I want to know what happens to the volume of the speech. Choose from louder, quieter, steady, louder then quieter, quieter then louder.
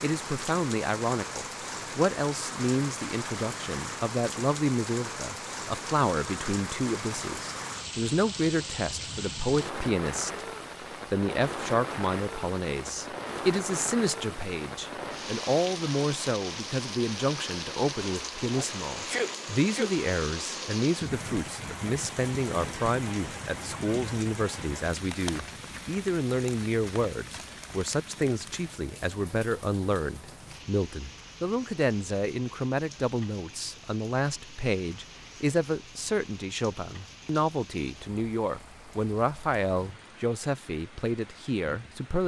steady.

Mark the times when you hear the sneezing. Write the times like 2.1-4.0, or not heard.
18.5-19.9.